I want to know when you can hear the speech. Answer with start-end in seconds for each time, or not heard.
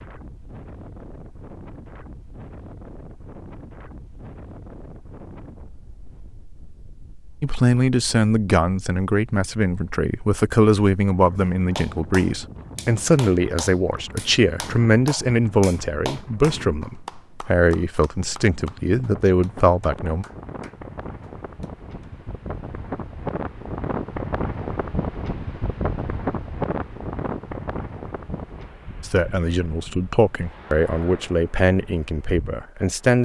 7.4-20.2, 29.0-33.1.